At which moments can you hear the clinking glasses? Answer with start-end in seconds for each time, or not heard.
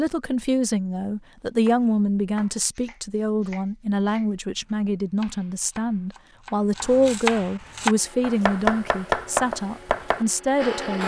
not heard.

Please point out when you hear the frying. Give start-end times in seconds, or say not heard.
not heard.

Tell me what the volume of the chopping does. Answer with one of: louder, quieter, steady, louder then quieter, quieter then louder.
louder.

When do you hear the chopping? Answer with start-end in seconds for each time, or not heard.
1.4-10.2.